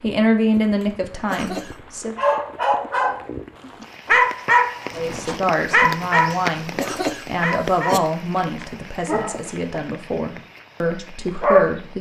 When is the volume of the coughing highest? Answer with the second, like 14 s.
7 s.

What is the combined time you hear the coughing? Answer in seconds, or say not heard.
3 s.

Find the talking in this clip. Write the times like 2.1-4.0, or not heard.
0.0-2.2, 4.9-11.9.